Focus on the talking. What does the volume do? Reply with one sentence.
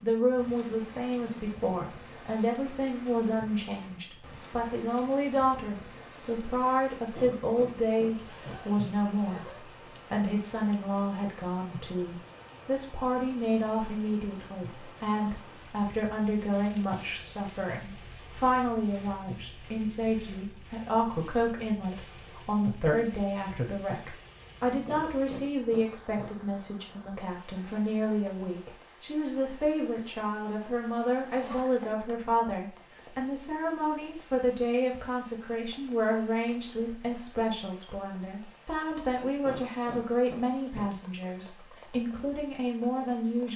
The volume of the talking stays about the same.